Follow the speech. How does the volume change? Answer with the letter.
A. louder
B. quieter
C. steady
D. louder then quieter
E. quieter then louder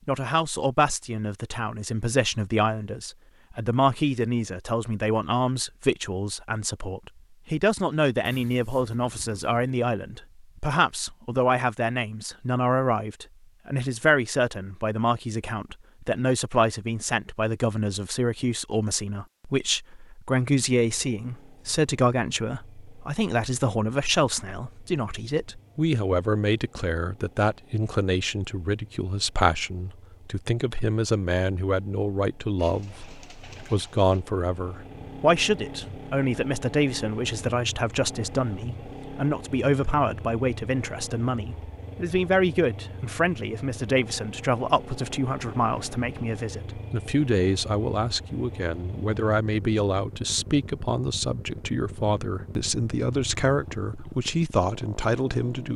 C.